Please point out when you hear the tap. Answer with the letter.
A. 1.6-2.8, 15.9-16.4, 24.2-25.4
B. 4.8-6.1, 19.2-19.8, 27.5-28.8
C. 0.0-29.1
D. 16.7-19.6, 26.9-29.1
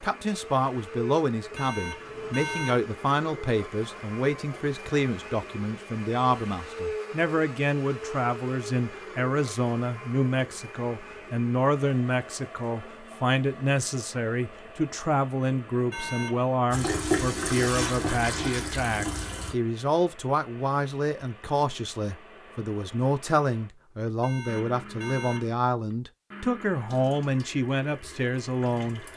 D.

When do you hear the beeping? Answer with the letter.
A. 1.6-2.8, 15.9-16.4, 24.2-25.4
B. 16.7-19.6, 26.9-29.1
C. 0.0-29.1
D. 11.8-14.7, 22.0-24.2
A.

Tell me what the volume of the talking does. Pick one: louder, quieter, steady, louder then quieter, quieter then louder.
steady.